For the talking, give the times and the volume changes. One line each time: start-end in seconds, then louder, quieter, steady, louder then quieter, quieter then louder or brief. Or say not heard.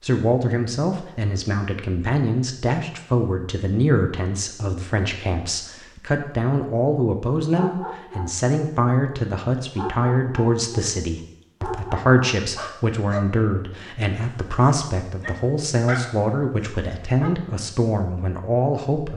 0.0-19.1 steady.